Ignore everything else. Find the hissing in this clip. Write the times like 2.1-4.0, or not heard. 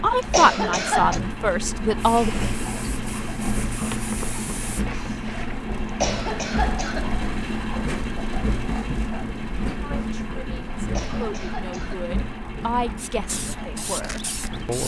1.9-5.6, 12.9-14.8.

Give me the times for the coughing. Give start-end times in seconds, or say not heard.
0.0-1.2, 5.7-7.2, 10.8-12.1.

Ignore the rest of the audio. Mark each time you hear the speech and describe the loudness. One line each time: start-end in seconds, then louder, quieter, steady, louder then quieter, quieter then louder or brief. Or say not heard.
0.0-2.3 brief
9.8-14.8 louder then quieter.